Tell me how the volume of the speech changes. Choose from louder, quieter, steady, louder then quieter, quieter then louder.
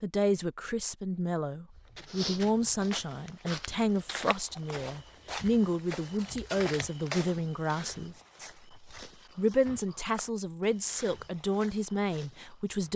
steady.